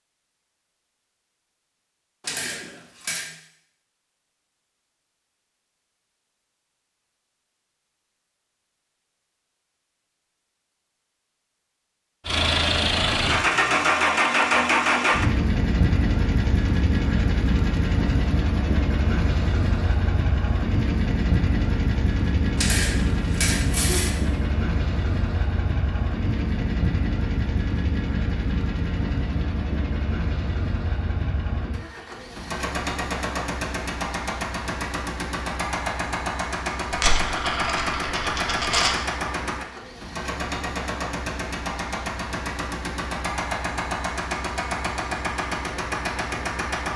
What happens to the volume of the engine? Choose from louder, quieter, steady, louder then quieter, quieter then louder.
quieter.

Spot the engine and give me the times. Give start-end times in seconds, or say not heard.
12.2-46.9.